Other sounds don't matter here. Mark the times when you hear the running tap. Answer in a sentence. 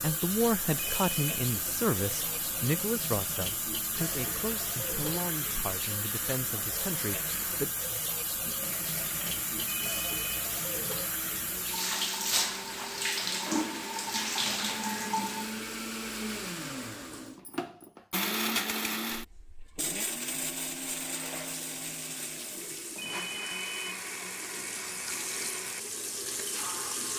You can hear the running tap from 0.0 to 15.6 s and from 20.9 to 27.1 s.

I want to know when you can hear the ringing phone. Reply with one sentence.
You can hear the ringing phone from 0.8 to 1.4 s, from 9.7 to 10.4 s and from 22.9 to 23.9 s.